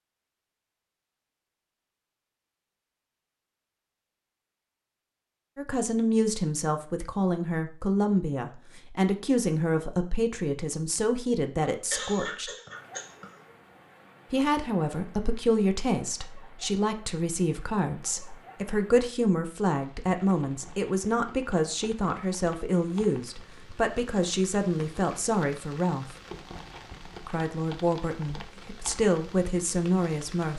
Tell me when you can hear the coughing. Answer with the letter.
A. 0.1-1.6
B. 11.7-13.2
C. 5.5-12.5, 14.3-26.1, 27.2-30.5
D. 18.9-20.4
B.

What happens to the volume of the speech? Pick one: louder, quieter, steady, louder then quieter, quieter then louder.
steady.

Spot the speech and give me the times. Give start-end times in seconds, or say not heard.
5.5-12.5, 14.3-26.1, 27.2-30.5.